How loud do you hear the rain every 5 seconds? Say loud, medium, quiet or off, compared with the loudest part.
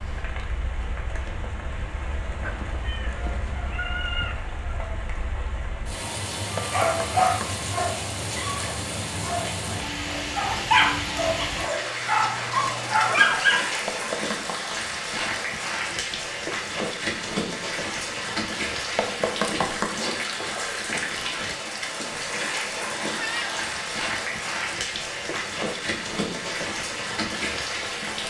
medium, loud, loud, loud, loud, loud.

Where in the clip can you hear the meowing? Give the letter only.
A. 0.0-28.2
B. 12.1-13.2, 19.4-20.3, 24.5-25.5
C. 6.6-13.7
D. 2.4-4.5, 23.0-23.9
D.